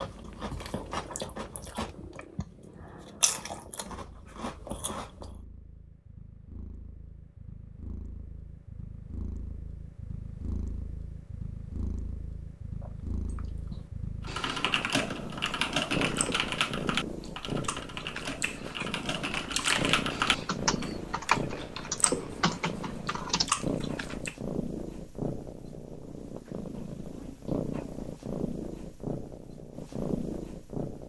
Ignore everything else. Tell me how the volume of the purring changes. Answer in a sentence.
The loudness of the purring goes up.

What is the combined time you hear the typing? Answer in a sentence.
The typing can be heard for 9 seconds in total.